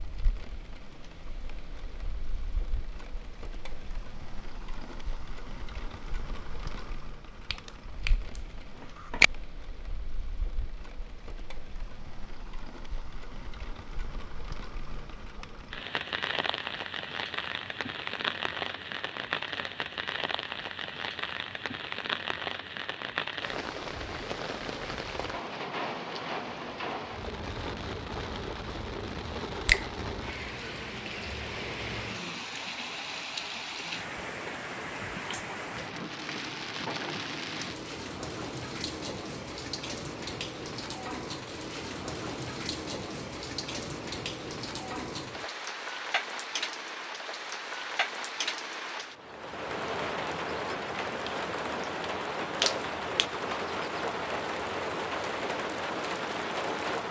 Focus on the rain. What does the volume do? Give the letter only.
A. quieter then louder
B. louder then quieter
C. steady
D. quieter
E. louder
E.